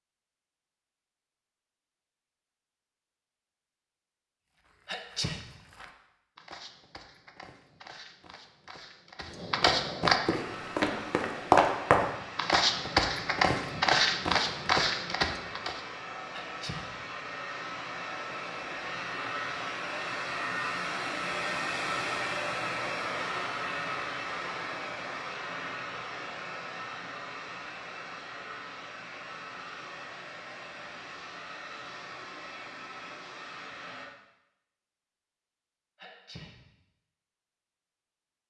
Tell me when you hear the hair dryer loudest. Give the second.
22 s.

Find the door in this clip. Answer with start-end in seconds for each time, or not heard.
not heard.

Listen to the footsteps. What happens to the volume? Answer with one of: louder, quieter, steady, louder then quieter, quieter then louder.
louder.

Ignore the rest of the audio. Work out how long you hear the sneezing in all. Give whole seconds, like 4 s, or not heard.
2 s.